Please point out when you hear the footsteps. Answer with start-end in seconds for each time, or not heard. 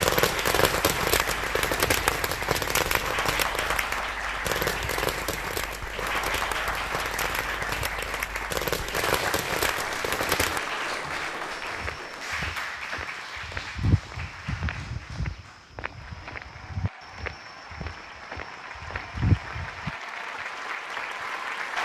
11.5-19.9.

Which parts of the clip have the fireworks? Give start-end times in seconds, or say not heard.
0.0-10.6.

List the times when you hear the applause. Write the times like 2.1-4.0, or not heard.
0.0-21.8.